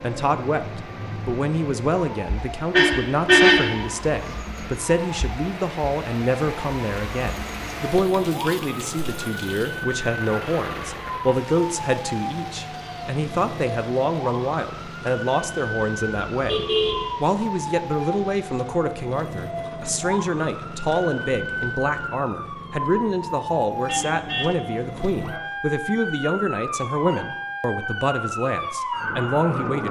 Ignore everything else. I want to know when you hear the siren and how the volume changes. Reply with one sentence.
You can hear the siren from 0.0 to 29.8 s, getting louder.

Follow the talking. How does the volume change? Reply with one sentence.
The volume of the talking stays about the same.